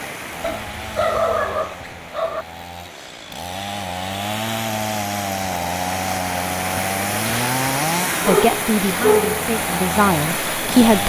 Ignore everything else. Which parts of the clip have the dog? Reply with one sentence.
The dog can be heard from 0.4 to 2.5 s and from 8.1 to 9.4 s.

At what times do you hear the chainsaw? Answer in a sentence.
The chainsaw can be heard from 0.0 to 11.0 s.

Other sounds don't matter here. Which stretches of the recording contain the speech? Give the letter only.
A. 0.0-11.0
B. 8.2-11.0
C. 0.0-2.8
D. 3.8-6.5
B.